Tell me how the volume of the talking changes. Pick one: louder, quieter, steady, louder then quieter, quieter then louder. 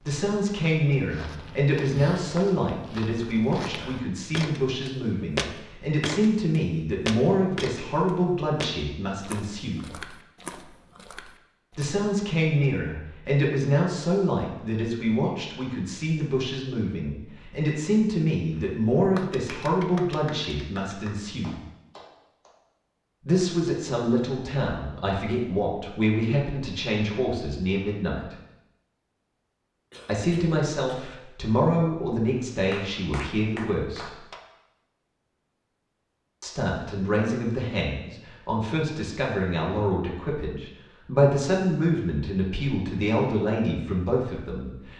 steady.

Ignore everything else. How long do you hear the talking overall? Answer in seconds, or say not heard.
37 s.